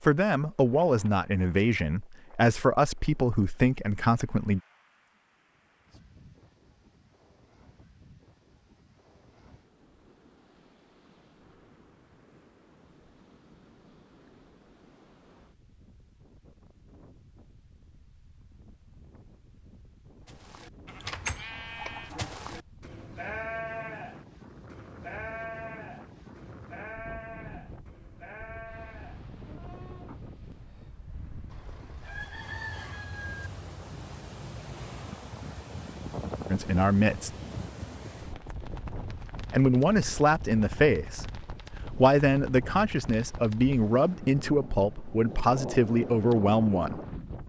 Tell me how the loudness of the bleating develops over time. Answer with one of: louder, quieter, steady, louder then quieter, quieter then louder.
quieter.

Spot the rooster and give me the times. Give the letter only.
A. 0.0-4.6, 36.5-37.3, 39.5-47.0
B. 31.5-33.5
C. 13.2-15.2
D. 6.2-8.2
B.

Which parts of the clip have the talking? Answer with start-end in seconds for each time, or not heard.
0.0-4.6, 36.5-37.3, 39.5-47.0.